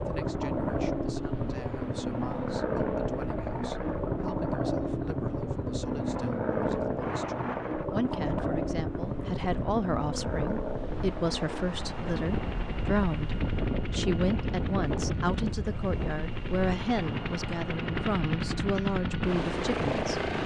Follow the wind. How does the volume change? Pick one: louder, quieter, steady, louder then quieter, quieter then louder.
louder then quieter.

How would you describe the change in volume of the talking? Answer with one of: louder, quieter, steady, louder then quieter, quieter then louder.
louder.